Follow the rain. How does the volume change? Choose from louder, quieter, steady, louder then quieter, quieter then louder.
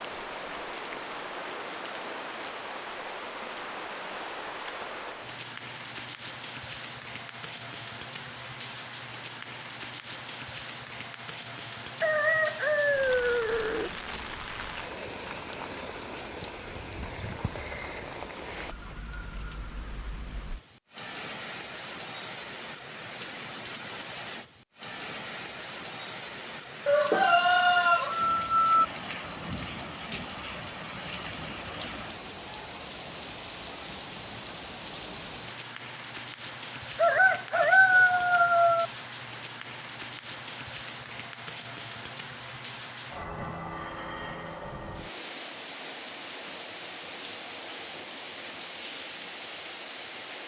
steady.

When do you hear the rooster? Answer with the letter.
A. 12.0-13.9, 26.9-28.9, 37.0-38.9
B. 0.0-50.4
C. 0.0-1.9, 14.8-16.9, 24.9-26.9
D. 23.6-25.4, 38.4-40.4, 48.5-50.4
A.